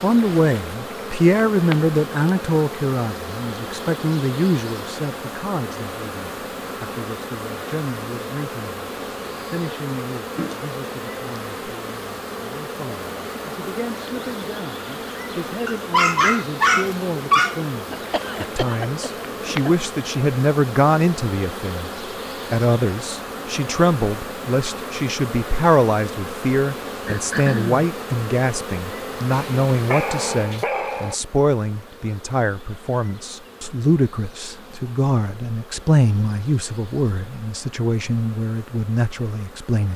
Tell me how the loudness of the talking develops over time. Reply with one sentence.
The volume of the talking goes down, then up.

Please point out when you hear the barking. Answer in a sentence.
You can hear the barking from 15.7 to 17.6 s and from 29.3 to 31.1 s.